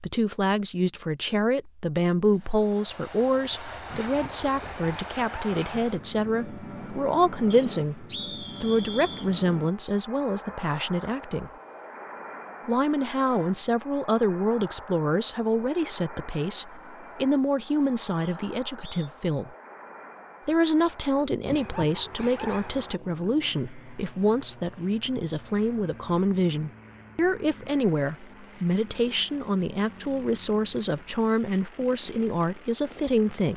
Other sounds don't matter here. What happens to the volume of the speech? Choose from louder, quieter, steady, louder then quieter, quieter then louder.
steady.